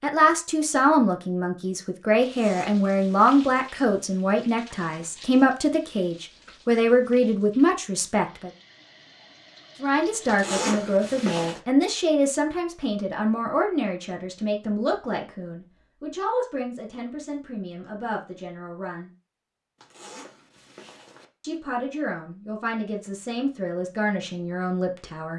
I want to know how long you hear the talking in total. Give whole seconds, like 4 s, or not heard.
22 s.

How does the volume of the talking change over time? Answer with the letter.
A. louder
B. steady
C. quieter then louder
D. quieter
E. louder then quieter
D.